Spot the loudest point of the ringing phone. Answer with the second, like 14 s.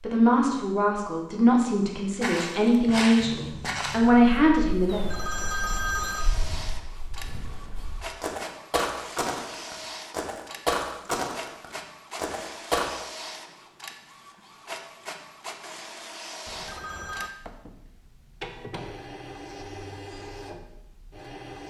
6 s.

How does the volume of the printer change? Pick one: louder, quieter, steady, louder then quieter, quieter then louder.
steady.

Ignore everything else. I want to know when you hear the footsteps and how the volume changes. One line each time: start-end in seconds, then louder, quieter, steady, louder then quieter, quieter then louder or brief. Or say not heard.
2.2-12.8 quieter then louder.